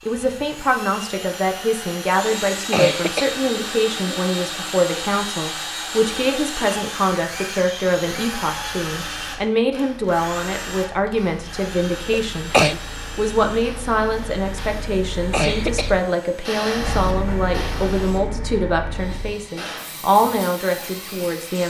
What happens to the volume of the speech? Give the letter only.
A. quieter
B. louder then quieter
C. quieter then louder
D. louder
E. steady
E.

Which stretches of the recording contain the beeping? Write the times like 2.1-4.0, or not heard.
not heard.